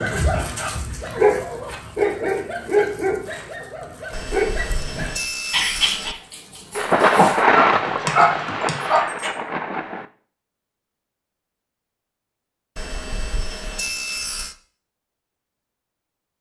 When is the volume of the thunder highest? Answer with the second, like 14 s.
8 s.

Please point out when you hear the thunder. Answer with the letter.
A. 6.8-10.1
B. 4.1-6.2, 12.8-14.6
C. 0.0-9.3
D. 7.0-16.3
A.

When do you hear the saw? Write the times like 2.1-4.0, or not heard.
4.1-6.2, 12.8-14.6.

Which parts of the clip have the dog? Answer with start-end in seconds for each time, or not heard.
0.0-9.3.